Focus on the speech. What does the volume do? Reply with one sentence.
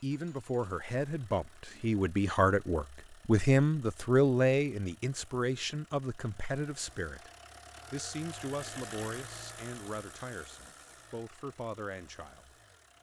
The loudness of the speech goes up, then down.